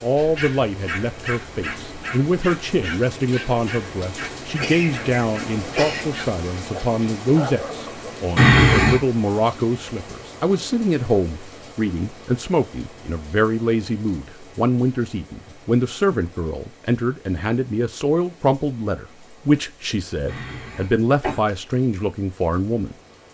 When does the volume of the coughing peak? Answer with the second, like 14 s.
9 s.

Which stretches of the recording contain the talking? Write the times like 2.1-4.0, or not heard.
0.0-22.9.